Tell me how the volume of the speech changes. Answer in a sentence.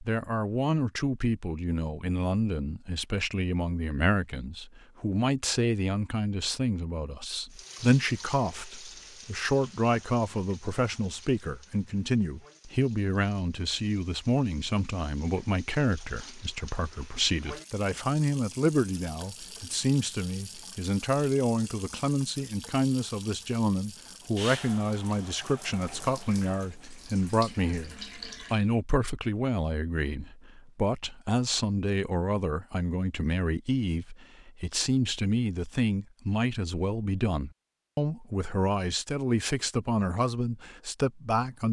The loudness of the speech stays about the same.